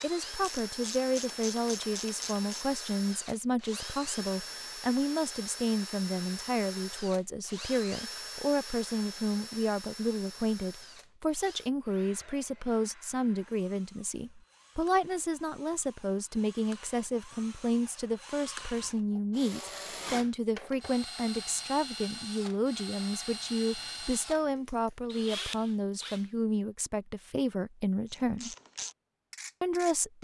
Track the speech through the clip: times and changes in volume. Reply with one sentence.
You can hear the speech from 0.0 to 28.6 s, at a steady volume; and briefly from 29.6 to 30.1 s.